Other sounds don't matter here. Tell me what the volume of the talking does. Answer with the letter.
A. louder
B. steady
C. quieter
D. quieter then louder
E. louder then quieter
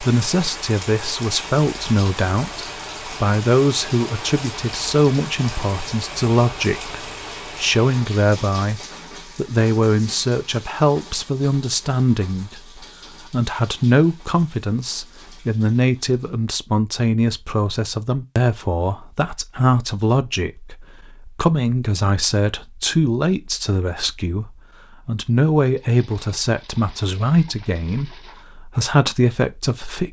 B.